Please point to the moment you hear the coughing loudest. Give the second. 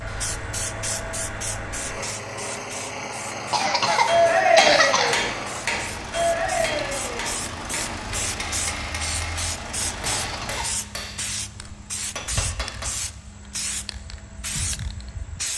5 s.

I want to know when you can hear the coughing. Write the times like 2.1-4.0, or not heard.
3.5-5.2, 10.2-10.8.